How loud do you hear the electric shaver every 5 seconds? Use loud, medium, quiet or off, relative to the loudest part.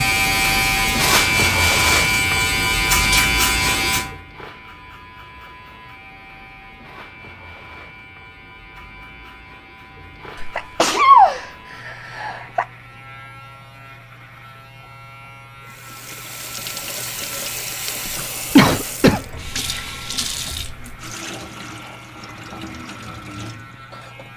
loud, quiet, quiet, quiet, quiet.